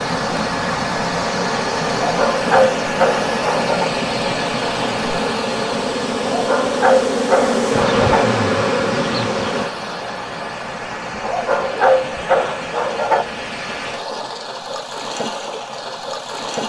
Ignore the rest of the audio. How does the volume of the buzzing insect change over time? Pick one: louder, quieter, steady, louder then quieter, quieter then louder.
louder.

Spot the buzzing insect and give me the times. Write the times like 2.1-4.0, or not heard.
0.0-9.8.